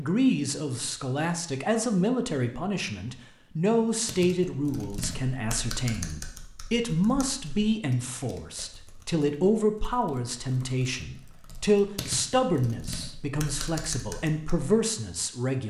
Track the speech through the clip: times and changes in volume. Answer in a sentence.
The speech can be heard from 0.0 to 15.6 s, at a steady volume.